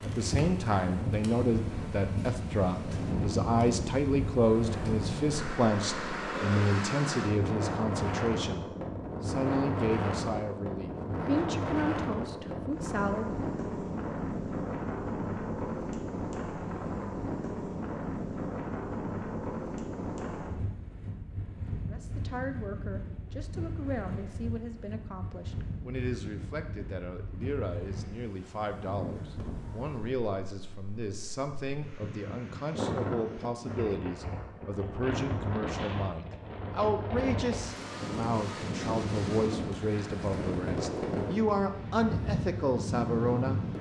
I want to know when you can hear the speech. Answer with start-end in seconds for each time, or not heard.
0.0-13.3, 21.9-43.6.